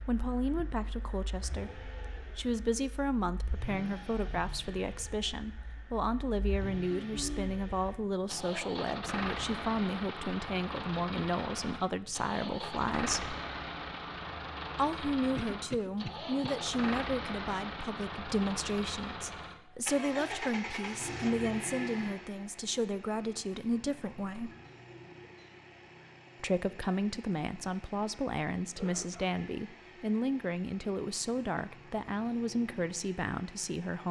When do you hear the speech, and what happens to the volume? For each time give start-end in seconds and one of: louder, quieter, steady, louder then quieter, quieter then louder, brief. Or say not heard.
0.1-13.3 steady
14.8-24.5 steady
26.4-34.0 steady.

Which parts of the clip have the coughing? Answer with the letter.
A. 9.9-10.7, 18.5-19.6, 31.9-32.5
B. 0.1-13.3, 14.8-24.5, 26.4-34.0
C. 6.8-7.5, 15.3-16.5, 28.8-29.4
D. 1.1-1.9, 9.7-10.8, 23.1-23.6
C.